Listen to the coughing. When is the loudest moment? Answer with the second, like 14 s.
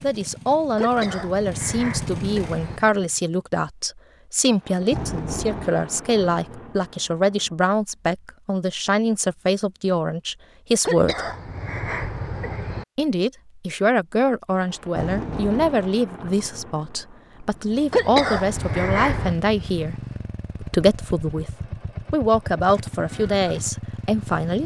18 s.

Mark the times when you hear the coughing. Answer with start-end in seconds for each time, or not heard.
0.8-2.8, 10.8-12.8, 17.9-19.4.